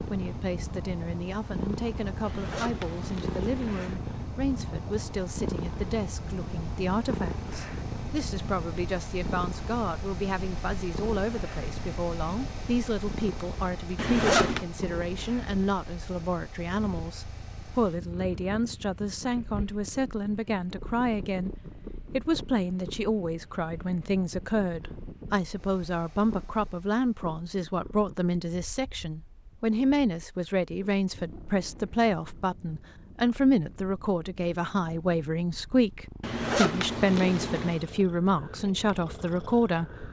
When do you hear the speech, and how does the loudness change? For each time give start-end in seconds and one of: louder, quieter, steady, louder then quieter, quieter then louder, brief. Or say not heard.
0.1-39.9 louder.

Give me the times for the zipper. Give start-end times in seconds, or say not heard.
2.2-4.0, 13.9-14.7, 36.2-37.8.